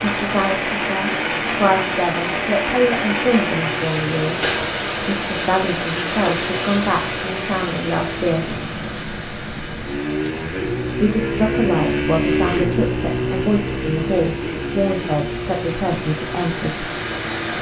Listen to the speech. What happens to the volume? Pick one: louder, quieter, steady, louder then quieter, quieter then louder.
steady.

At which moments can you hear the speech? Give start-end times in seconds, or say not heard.
0.0-8.6, 10.9-16.9.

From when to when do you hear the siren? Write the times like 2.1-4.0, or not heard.
not heard.